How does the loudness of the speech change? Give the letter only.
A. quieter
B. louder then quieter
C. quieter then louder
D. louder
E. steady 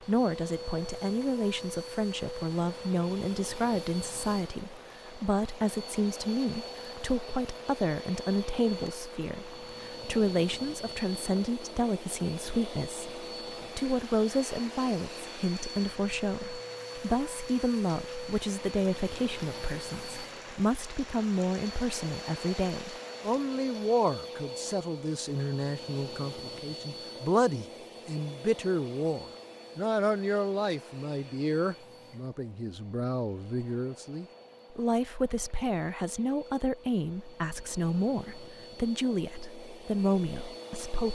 E.